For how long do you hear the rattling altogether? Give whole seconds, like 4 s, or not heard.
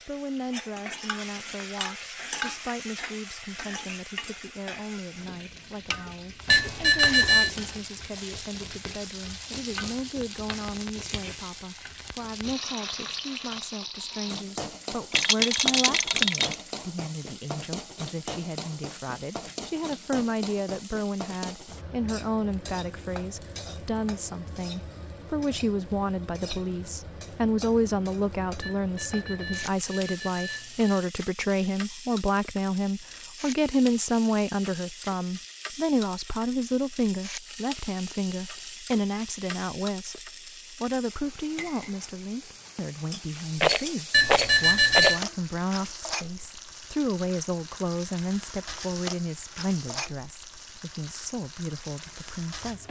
3 s.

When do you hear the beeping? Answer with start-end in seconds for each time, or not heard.
6.5-7.5, 28.6-31.1, 44.1-45.2.